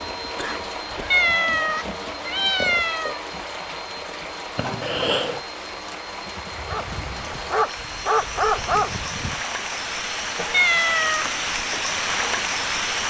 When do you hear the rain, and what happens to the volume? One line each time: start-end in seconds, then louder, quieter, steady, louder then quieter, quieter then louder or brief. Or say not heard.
0.0-13.0 louder.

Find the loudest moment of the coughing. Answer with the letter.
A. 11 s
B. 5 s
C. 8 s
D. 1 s
B.